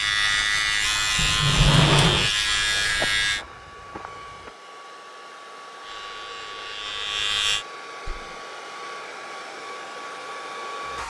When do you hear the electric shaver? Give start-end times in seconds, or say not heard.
0.0-3.5, 5.8-7.7.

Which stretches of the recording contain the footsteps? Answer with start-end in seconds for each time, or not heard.
2.8-4.5.